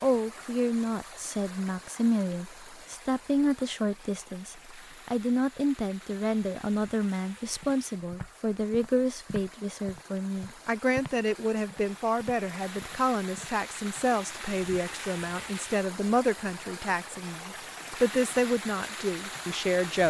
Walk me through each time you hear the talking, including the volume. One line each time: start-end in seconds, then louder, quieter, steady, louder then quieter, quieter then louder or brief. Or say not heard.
0.0-20.0 steady.